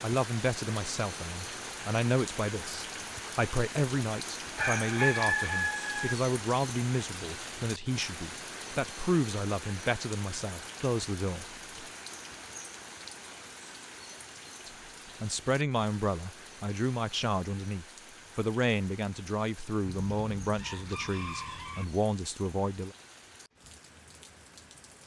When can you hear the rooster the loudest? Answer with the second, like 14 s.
5 s.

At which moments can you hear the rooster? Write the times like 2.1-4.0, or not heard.
4.5-6.2, 19.9-21.9.